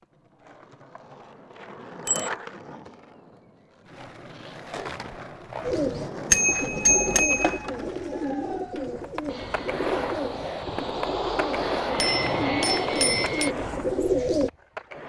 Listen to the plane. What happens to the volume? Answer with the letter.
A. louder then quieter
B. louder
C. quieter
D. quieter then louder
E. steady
B.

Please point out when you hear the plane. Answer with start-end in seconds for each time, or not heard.
9.2-13.6.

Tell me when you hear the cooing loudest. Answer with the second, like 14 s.
14 s.